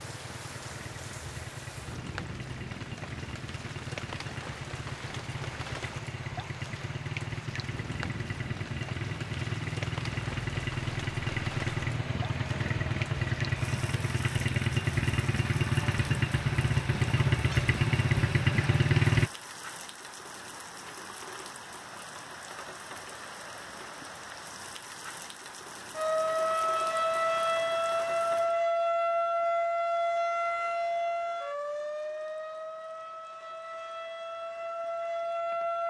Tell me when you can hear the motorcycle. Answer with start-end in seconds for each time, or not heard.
0.0-19.3.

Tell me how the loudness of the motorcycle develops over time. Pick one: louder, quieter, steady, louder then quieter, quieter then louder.
louder.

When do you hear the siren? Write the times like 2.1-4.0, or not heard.
25.9-35.8.